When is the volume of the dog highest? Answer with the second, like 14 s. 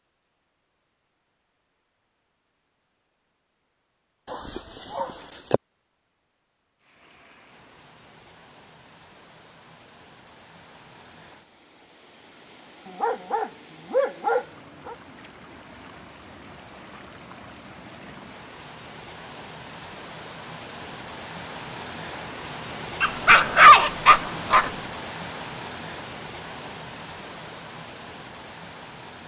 24 s.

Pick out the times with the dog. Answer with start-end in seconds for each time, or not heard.
4.3-5.6, 12.8-14.9, 23.0-24.7.